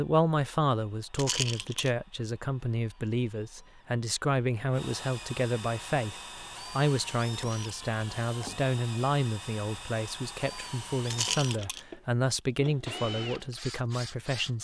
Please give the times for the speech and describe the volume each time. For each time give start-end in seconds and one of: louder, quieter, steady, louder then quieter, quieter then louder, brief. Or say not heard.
0.0-14.5 steady.